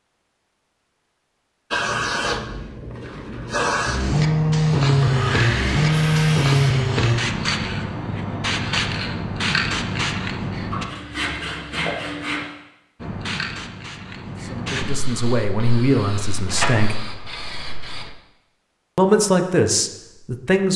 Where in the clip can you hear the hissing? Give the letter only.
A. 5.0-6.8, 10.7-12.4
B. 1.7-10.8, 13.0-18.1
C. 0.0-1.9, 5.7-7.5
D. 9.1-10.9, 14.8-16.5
B.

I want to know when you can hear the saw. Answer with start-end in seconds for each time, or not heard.
5.0-6.8, 10.7-12.4.